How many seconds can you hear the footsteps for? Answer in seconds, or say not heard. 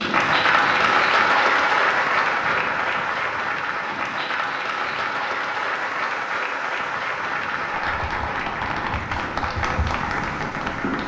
not heard.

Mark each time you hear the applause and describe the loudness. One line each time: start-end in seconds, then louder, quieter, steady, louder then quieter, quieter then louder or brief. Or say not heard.
0.0-11.0 quieter.